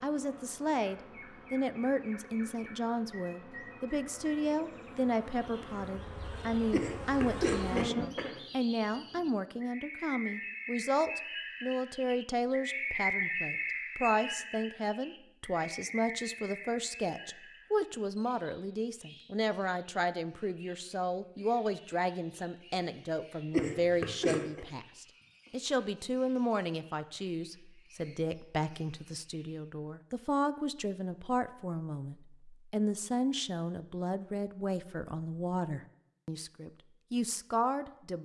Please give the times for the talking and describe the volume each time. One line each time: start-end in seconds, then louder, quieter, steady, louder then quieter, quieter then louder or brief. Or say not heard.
0.0-38.2 steady.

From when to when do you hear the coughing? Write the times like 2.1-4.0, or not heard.
6.7-8.4, 23.5-24.6.